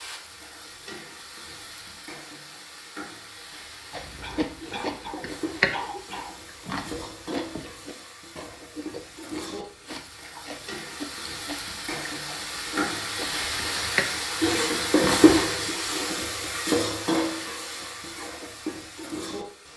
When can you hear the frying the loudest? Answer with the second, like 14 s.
15 s.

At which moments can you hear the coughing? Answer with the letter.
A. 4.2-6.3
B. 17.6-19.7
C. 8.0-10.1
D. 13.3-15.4
A.